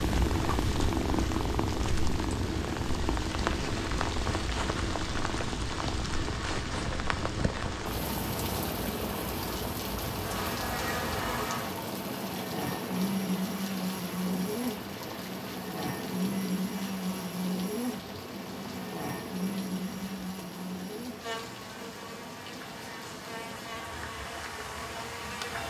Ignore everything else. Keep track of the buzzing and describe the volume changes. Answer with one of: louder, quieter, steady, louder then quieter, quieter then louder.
quieter.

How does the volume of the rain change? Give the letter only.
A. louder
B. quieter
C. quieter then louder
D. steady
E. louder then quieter
B.